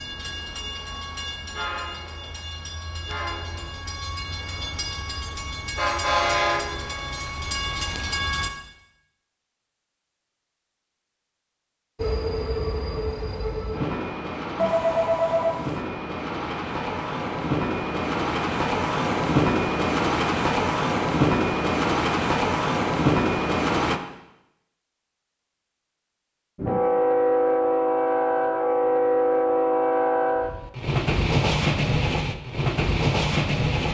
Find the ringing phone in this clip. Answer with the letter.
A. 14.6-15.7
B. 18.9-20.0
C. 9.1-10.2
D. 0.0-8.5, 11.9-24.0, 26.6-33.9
A.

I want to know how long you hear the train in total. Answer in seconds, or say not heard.
28 s.